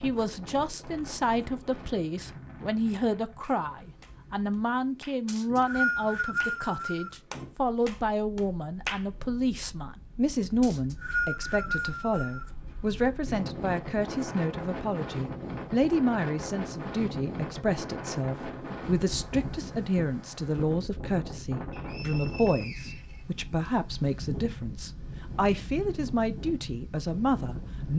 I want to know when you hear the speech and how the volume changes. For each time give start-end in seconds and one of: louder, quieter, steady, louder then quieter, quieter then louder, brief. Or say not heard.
0.0-27.9 steady.